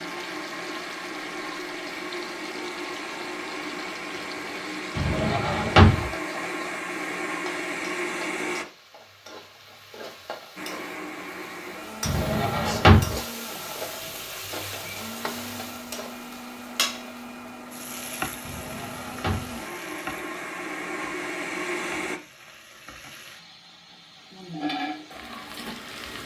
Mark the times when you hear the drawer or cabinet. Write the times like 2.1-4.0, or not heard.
5.0-6.1, 12.1-13.2, 18.4-19.6.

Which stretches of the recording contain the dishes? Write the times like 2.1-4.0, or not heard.
not heard.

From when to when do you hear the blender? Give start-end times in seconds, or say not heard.
0.0-8.7, 10.6-22.2.